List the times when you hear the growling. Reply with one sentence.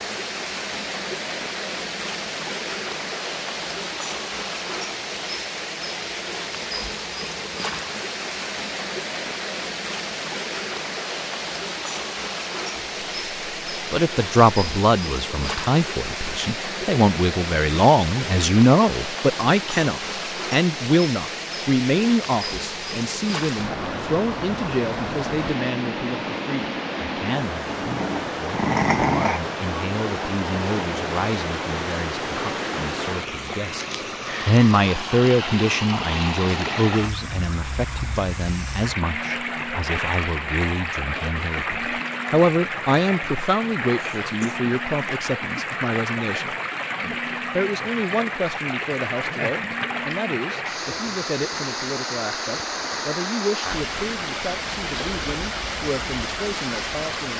You can hear the growling from 27.6 to 29.4 s.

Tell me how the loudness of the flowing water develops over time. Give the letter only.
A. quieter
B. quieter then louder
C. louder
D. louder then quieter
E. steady
E.